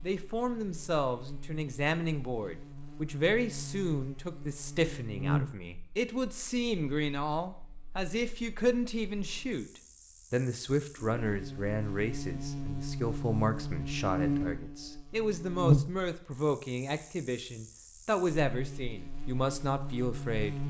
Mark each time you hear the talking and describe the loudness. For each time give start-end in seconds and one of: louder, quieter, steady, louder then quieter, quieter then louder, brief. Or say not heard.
0.0-20.6 steady.